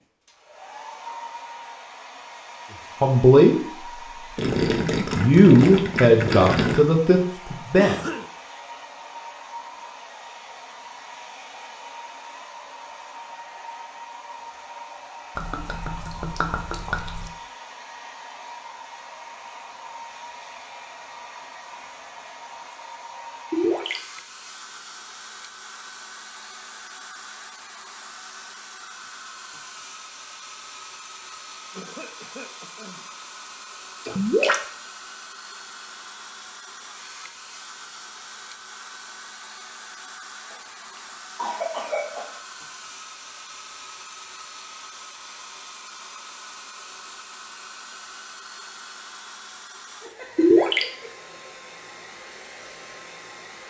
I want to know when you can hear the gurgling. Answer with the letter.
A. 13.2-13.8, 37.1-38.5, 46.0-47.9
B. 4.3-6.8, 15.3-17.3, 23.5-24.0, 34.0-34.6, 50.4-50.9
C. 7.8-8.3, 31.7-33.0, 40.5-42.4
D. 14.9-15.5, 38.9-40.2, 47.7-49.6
B.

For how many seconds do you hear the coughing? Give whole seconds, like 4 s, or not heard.
4 s.